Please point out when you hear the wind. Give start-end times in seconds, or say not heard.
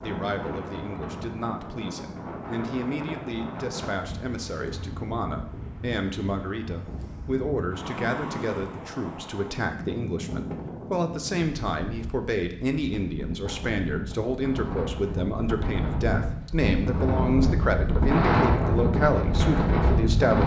0.0-20.4.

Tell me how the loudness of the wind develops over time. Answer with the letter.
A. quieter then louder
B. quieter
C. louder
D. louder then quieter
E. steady
C.